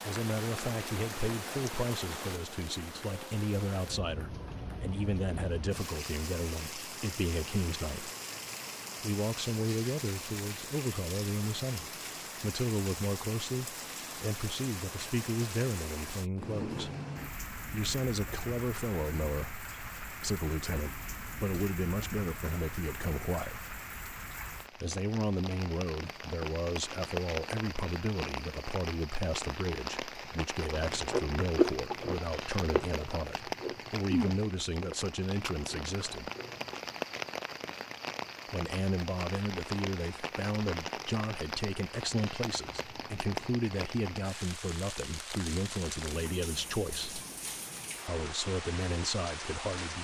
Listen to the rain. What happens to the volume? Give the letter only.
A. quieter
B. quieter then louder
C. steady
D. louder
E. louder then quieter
C.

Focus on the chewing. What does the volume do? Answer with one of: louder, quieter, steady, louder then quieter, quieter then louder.
quieter.